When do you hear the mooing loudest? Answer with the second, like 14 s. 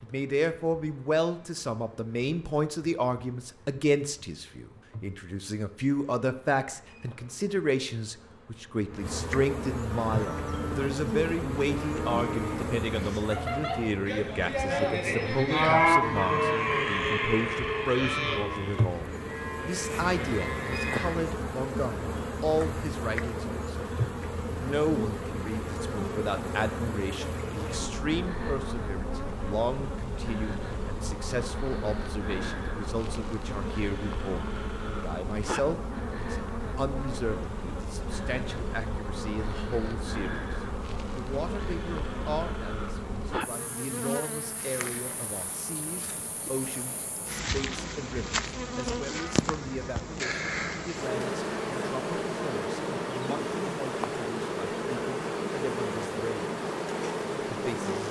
16 s.